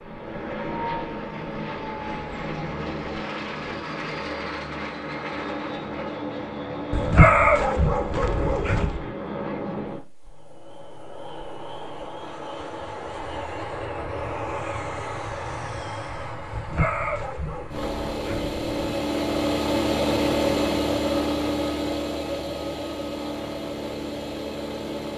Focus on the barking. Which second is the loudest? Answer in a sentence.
The volume of the barking peaks at 7 seconds.